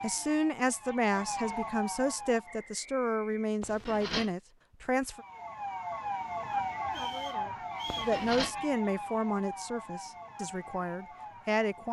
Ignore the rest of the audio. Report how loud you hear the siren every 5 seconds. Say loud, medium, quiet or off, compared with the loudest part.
loud, loud, medium.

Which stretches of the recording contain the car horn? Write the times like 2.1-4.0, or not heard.
3.6-4.3, 7.8-8.6.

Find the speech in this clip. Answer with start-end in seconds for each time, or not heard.
0.0-5.2, 7.0-11.8.